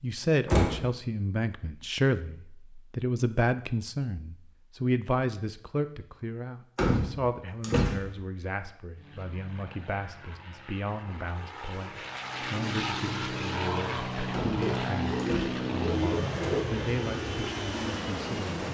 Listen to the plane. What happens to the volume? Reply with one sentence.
The loudness of the plane goes up.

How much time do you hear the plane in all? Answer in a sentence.
The plane can be heard for 10 seconds in total.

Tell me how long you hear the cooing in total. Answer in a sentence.
The cooing can be heard for 2 seconds in total.